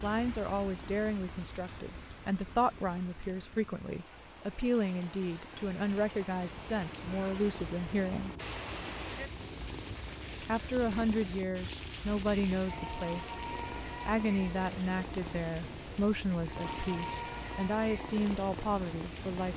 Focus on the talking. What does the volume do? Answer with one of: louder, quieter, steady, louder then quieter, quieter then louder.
steady.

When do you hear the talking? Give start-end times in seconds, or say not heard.
0.0-8.3, 10.4-19.5.